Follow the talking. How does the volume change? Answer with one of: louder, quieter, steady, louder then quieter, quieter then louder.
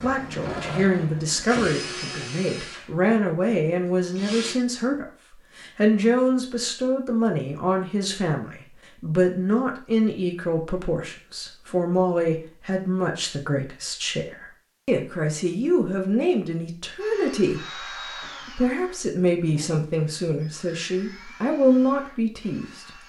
steady.